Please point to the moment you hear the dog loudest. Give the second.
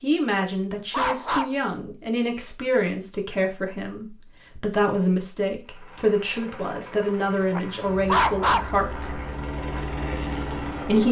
8 s.